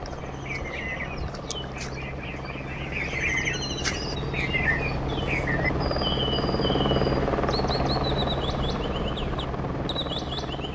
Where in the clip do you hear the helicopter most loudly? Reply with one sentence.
The volume of the helicopter peaks at 7 seconds.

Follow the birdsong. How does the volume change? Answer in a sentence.
The volume of the birdsong goes up, then down.